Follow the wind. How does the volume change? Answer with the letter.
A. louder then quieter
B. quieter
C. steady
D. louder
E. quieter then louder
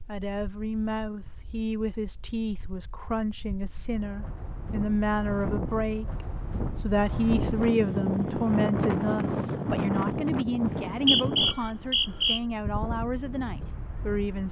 A.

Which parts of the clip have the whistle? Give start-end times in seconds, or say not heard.
10.7-12.4.